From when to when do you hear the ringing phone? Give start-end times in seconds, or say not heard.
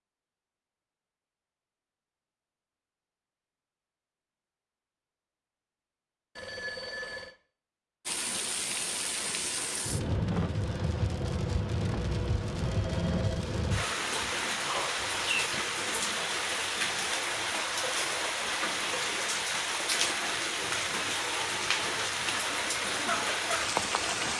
6.3-7.3, 12.6-13.4.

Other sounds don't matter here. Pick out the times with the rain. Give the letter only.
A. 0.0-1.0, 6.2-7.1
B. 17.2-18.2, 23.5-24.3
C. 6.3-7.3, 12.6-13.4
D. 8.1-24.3
D.